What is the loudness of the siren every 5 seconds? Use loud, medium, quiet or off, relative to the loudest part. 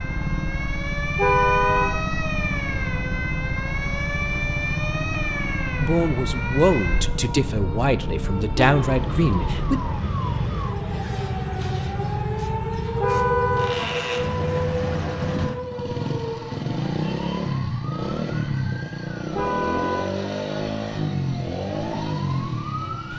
loud, loud, loud, medium, medium.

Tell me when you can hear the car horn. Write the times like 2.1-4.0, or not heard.
1.1-2.0, 12.9-13.8, 19.3-20.1.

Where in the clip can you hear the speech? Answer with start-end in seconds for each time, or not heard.
5.8-9.8.